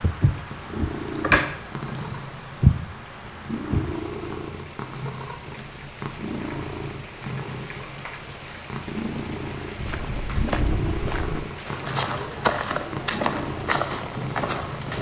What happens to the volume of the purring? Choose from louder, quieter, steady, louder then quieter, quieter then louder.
steady.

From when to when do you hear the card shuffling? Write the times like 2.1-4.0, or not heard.
1.2-1.9.